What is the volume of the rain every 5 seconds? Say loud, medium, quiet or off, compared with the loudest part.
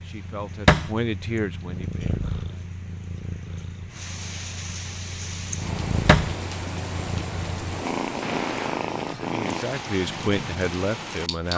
medium, loud, loud.